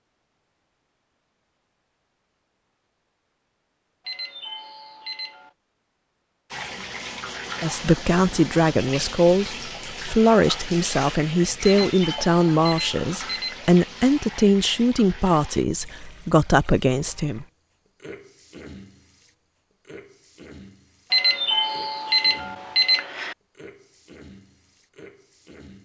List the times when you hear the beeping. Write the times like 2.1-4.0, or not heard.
4.0-5.5, 11.7-13.8, 21.1-23.4.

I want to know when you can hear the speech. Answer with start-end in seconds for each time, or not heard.
7.6-17.4.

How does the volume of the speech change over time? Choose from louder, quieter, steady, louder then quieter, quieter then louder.
steady.